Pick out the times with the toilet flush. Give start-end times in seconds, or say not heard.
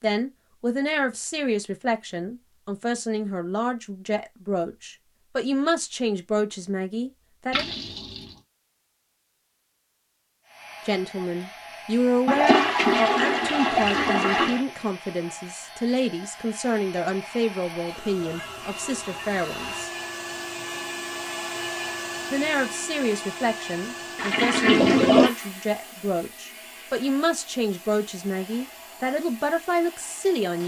7.5-8.3, 12.2-14.7, 24.1-25.4.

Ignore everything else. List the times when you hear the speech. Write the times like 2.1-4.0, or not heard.
0.0-7.7, 10.8-19.9, 22.3-30.6.